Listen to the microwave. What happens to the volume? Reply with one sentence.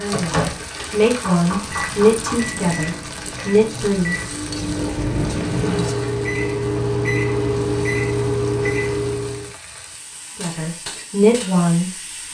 The loudness of the microwave goes up.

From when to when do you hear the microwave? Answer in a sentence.
The microwave can be heard from 0.0 to 9.6 s.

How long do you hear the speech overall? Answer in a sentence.
You can hear the speech for 6 seconds altogether.